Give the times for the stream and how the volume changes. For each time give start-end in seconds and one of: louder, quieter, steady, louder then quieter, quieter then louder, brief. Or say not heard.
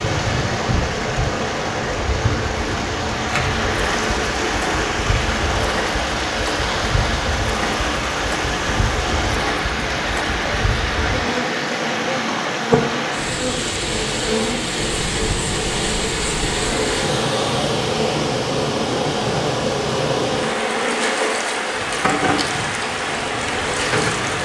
0.0-24.4 steady.